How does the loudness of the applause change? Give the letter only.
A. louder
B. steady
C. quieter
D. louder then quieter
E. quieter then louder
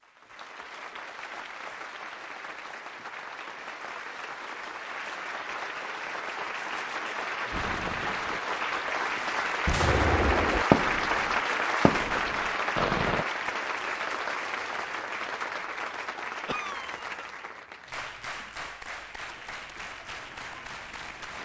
D.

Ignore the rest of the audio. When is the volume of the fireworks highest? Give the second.
11 s.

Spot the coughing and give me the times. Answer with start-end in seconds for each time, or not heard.
16.4-17.2.